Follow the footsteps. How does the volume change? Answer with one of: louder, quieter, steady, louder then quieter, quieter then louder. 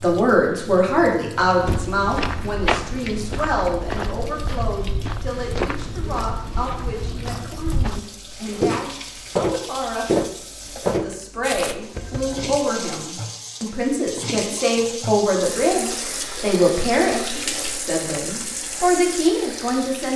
quieter then louder.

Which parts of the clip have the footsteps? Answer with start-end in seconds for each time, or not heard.
1.5-11.8.